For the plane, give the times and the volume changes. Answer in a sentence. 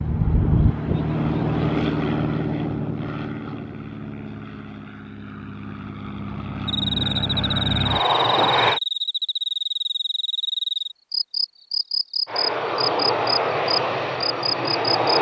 The plane can be heard from 0.0 to 8.8 s, getting quieter then louder; and briefly from 12.2 to 15.1 s.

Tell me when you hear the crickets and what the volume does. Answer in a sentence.
The crickets can be heard from 6.7 to 15.1 s, at a steady volume.